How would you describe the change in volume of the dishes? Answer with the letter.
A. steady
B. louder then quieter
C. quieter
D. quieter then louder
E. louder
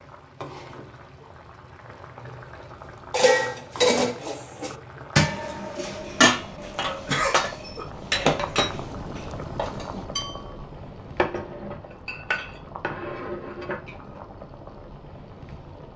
C.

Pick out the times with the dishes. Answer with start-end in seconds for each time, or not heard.
3.1-14.2.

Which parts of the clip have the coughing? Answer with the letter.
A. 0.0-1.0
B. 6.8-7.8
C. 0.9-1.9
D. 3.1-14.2
B.